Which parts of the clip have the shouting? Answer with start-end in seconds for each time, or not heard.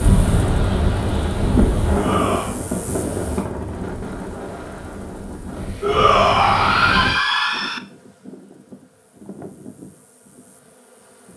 1.9-2.5, 5.8-7.8.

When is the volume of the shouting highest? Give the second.
6 s.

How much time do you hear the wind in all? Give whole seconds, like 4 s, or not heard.
7 s.